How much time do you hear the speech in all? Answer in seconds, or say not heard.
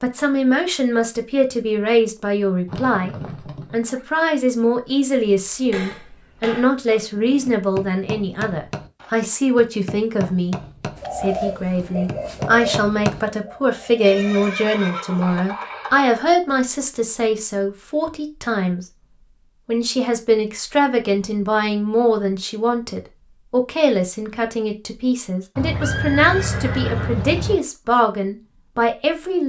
29 s.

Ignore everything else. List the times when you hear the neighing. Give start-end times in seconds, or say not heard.
2.6-4.0, 14.1-16.1, 25.6-27.6.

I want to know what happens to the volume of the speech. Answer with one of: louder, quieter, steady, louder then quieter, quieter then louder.
steady.